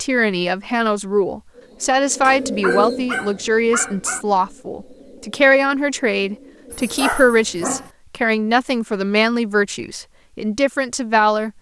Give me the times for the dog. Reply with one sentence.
You can hear the dog from 2.2 to 4.2 s and from 6.7 to 7.9 s.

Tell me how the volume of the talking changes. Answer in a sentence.
The loudness of the talking stays about the same.